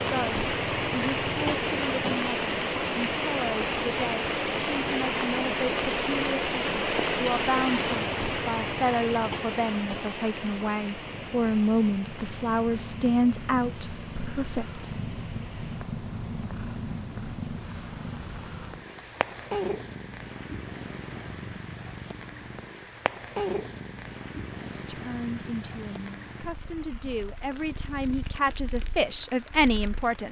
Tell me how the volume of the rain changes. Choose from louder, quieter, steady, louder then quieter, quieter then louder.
quieter.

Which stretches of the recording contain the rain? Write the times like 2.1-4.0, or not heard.
0.0-30.2.